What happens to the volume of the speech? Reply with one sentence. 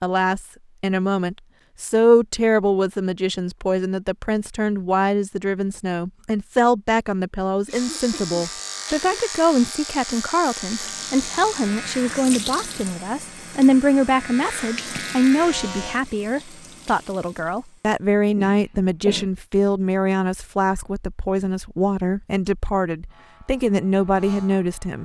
The loudness of the speech stays about the same.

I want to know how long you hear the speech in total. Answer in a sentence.
The speech can be heard for 25 seconds in total.